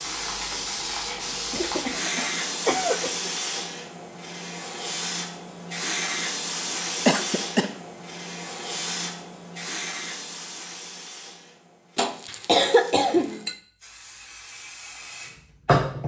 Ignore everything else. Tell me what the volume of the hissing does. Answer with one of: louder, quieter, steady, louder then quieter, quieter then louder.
quieter.